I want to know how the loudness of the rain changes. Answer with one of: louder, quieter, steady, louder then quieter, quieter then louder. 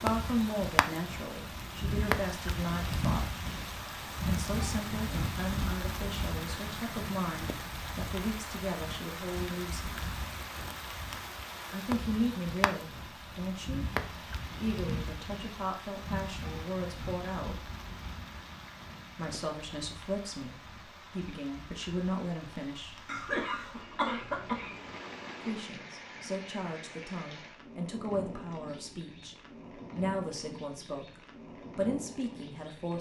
quieter.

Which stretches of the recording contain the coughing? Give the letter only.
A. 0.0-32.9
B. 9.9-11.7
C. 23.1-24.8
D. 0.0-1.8
C.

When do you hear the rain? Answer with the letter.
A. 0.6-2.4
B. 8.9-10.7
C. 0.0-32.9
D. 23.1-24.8
C.